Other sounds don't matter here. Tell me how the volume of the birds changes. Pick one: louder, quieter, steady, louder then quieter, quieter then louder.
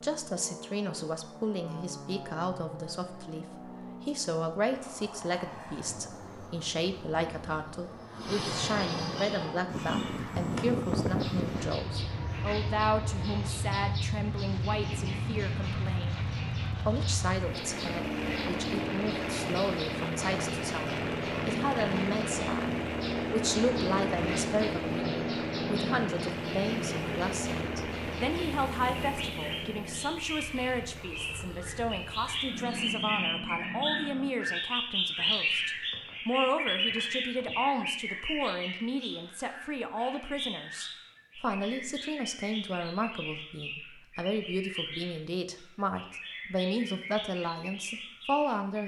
louder then quieter.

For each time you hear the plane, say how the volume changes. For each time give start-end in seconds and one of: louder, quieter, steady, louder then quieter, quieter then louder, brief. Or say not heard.
0.0-34.4 louder then quieter.